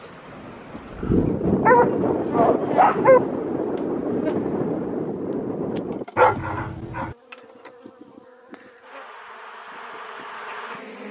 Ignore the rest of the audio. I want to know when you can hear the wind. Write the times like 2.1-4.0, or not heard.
0.0-6.0.